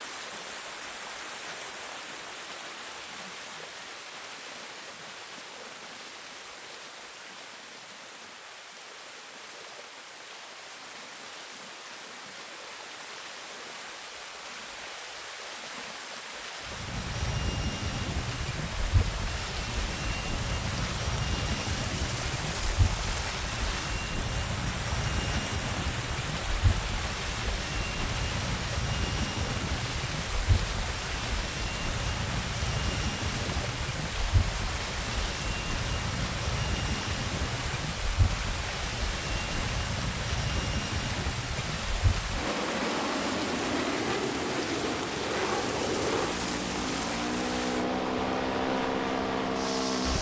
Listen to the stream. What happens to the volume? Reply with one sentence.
The loudness of the stream goes up.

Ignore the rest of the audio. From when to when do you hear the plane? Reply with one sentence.
You can hear the plane from 16.6 to 50.1 s.